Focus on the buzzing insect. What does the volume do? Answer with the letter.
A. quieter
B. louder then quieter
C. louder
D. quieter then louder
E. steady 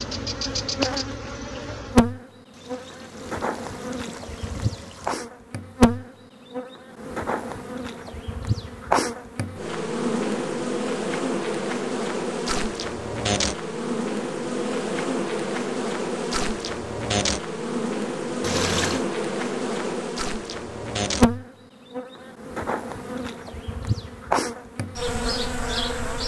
E.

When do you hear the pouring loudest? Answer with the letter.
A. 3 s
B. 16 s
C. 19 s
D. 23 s
C.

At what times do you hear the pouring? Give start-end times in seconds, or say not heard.
2.5-5.2, 18.4-19.1.